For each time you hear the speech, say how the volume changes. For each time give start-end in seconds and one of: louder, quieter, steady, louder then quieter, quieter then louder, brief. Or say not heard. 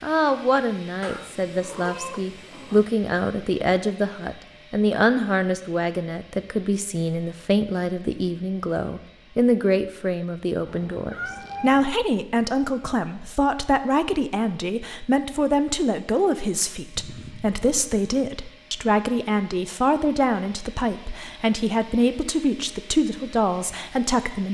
0.0-24.4 steady.